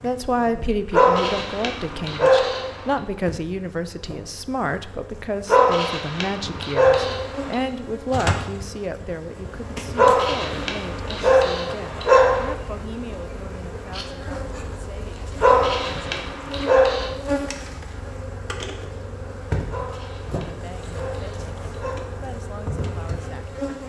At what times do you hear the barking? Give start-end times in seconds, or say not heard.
0.9-2.8, 5.5-7.5, 9.9-12.5, 15.4-17.1, 19.7-22.1.